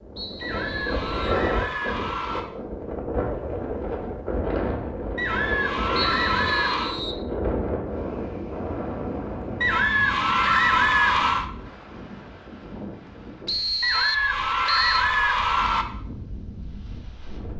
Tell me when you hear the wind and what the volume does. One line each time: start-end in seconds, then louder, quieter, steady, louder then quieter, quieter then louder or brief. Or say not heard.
0.0-17.5 quieter.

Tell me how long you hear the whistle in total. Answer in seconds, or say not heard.
4 s.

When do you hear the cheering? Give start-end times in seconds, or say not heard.
0.4-2.4, 5.2-7.0, 9.6-11.4, 13.8-15.8.